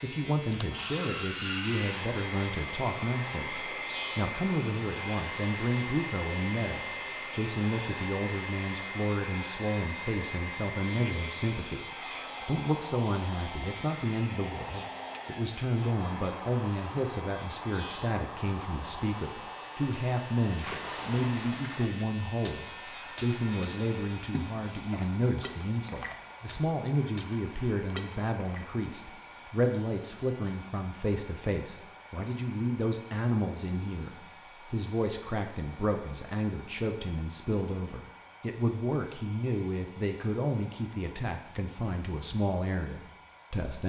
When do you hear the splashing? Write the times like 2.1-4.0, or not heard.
19.9-28.6.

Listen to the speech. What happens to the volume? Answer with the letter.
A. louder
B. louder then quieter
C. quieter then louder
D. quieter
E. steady
E.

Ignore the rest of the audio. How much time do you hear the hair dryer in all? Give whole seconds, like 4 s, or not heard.
44 s.